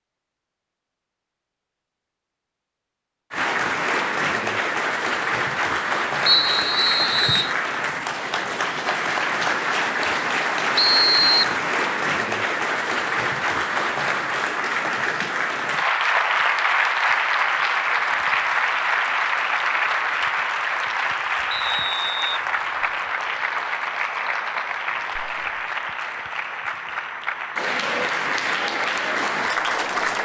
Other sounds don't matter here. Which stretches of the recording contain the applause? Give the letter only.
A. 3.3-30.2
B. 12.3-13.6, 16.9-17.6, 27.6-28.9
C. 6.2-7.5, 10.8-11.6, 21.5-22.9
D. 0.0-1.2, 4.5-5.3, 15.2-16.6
A.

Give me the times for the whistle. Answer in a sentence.
The whistle can be heard from 6.2 to 7.5 s, from 10.8 to 11.6 s and from 21.5 to 22.9 s.